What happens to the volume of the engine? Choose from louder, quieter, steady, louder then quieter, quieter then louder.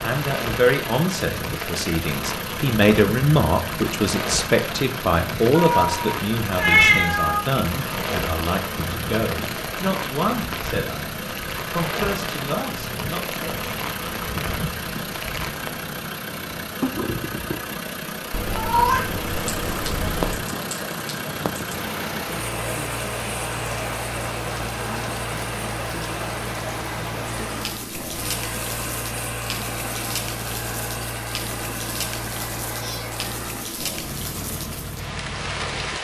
steady.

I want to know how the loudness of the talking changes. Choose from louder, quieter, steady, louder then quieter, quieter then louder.
quieter.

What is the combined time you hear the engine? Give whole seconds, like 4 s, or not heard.
36 s.